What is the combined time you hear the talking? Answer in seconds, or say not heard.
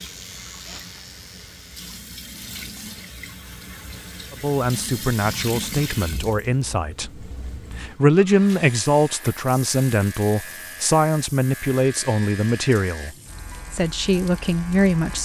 11 s.